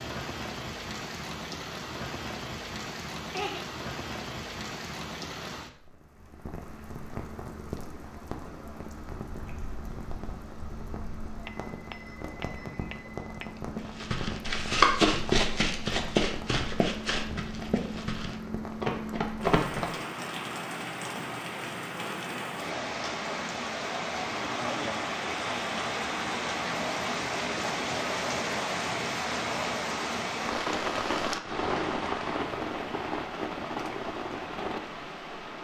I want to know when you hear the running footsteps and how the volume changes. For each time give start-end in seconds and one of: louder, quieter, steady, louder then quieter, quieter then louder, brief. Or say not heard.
13.8-19.9 quieter then louder.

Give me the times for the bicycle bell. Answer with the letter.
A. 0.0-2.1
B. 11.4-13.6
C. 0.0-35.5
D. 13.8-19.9
B.